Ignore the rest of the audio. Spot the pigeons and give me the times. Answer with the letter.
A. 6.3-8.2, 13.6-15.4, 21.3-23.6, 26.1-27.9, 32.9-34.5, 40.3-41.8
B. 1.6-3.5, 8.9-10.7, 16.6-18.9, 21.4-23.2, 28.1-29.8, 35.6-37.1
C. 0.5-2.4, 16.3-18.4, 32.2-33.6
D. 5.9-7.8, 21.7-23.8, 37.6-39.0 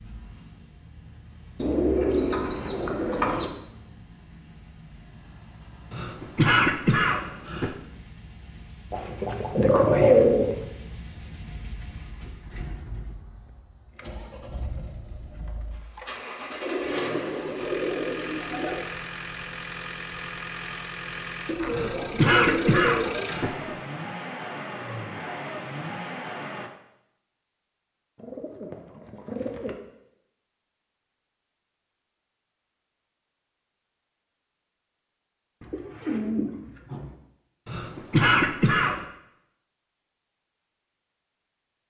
B.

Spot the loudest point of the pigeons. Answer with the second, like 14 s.
10 s.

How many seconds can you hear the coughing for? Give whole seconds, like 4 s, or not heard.
5 s.